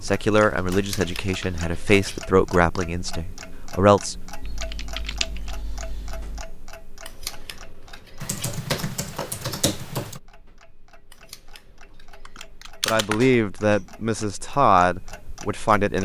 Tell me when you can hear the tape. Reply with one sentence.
You can't hear the tape here.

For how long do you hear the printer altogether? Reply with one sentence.
You can't hear the printer here.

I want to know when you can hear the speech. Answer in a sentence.
You can hear the speech from 0.0 to 4.2 s and from 12.8 to 16.0 s.